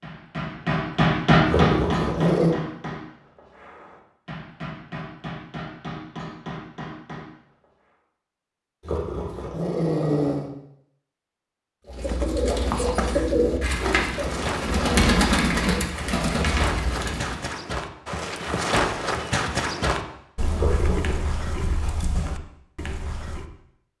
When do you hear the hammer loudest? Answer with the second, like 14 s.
1 s.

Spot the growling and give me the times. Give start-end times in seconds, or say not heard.
1.4-2.5, 8.8-10.5, 20.6-21.2.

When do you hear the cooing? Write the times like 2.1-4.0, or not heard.
11.8-17.4.